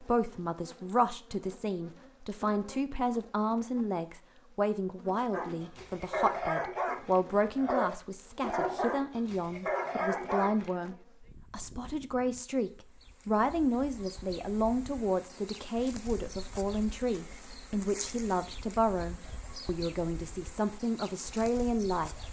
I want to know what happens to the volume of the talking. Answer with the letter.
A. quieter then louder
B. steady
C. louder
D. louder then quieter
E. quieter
B.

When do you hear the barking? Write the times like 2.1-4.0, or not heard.
5.3-10.7.